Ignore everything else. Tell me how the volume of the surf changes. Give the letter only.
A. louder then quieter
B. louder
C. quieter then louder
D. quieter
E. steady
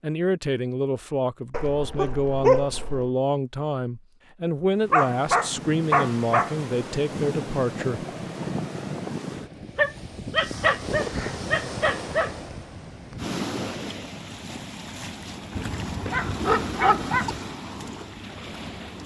E.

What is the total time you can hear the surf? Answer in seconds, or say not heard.
14 s.